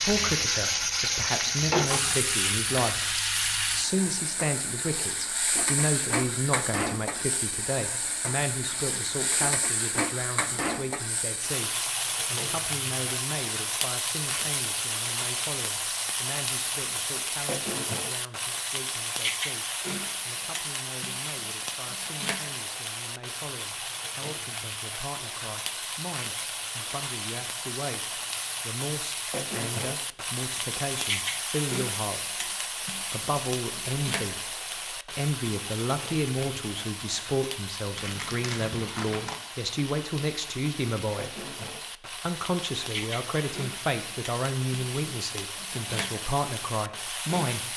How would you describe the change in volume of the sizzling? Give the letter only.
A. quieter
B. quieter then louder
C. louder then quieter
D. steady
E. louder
A.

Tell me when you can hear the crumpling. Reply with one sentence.
You can hear the crumpling from 38.0 to 39.4 s.